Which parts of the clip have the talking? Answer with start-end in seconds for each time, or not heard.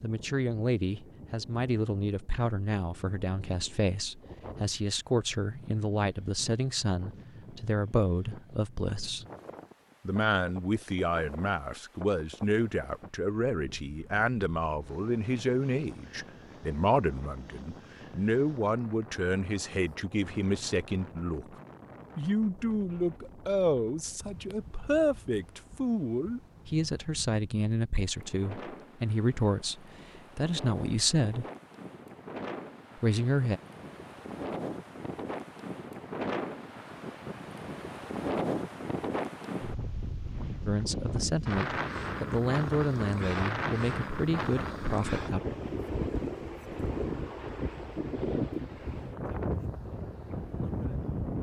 0.0-9.2, 10.1-21.4, 22.1-31.4, 33.0-33.6, 40.6-45.4.